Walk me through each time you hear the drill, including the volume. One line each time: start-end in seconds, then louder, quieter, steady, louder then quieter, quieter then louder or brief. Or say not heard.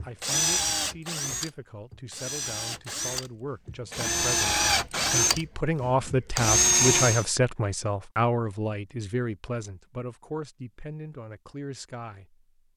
0.0-7.2 quieter then louder.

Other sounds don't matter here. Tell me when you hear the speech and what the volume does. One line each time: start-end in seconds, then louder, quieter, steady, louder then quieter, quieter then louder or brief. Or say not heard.
0.0-12.4 louder then quieter.